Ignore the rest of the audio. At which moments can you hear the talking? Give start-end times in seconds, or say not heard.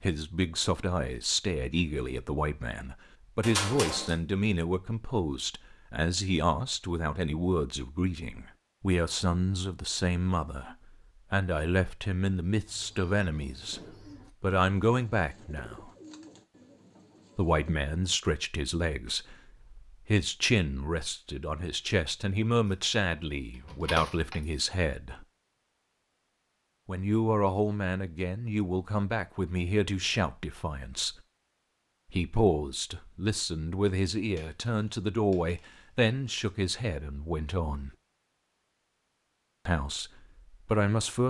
0.0-13.8, 14.4-15.9, 17.4-25.2, 26.9-31.1, 32.1-37.9, 39.6-41.2.